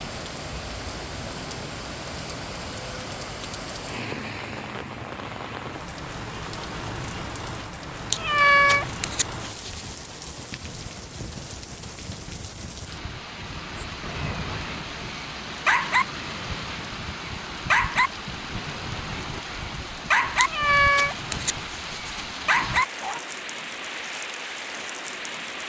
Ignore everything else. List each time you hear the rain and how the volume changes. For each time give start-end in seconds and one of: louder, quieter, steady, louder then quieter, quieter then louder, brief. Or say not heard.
0.0-25.6 steady.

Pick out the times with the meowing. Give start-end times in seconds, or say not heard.
8.1-9.8, 20.4-22.2.